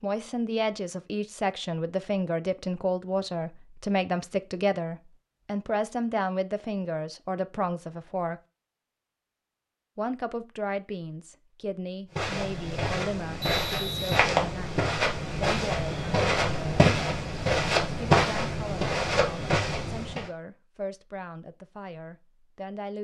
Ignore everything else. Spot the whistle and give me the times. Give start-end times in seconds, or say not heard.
13.4-14.2.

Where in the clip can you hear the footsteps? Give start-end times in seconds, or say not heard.
12.1-20.3.